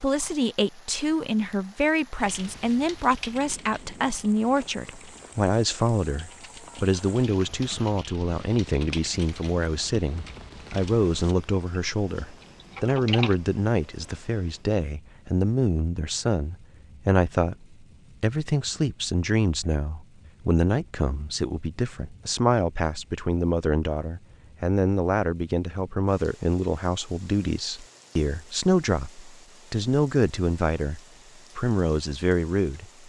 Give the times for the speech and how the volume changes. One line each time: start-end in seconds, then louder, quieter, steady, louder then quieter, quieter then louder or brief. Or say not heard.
0.0-33.0 steady.